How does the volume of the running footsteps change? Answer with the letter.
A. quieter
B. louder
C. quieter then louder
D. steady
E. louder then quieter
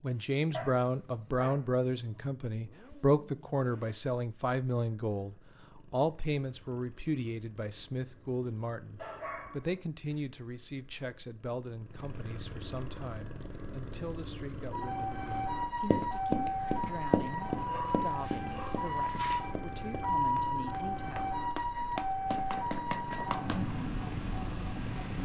C.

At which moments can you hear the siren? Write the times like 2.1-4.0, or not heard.
14.7-25.1.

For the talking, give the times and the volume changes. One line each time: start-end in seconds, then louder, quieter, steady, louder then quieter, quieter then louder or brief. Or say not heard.
0.0-21.6 quieter.